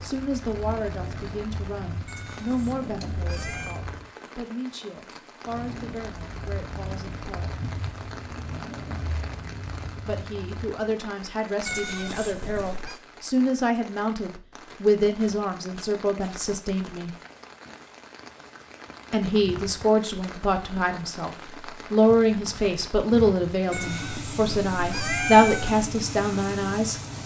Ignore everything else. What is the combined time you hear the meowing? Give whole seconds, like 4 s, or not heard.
5 s.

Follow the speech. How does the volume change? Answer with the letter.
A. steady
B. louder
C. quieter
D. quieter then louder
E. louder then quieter
B.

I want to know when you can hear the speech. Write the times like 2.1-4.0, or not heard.
0.0-7.5, 10.1-17.1, 19.1-27.0.